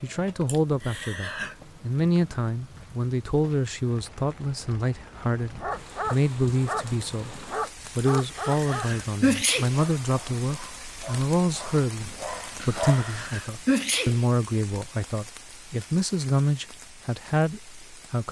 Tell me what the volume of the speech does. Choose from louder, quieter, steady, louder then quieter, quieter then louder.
steady.